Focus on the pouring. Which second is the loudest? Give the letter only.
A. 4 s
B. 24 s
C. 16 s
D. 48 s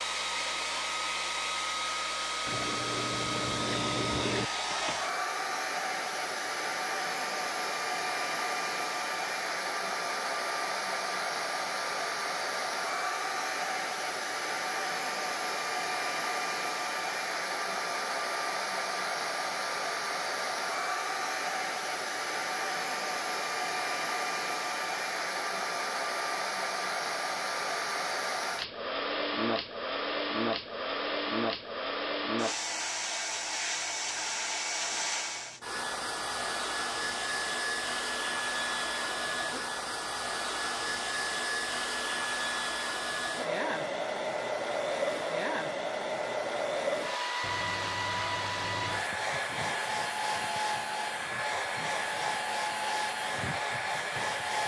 A.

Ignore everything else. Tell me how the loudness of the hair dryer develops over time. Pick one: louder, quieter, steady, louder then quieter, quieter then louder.
steady.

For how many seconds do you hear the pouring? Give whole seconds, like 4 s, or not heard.
4 s.